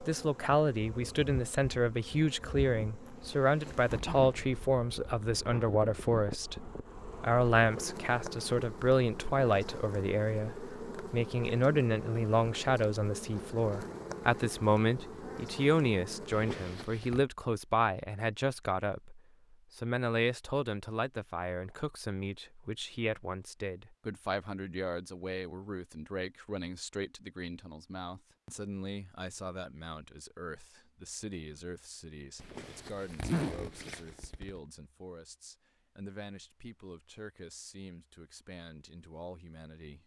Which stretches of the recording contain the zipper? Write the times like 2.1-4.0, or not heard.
3.1-4.5, 16.3-17.2, 32.4-34.6.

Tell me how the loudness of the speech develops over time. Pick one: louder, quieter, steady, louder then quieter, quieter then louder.
quieter.